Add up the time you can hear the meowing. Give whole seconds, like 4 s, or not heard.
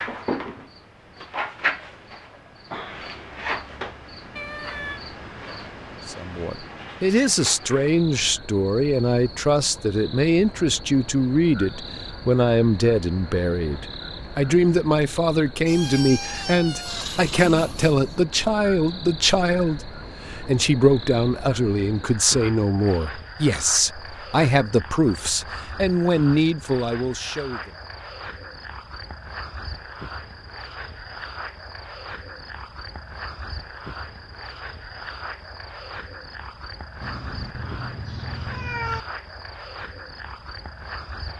5 s.